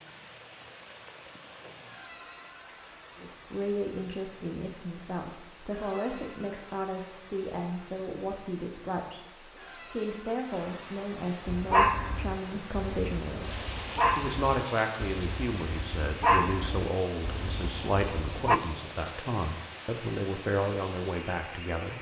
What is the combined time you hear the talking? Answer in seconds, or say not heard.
18 s.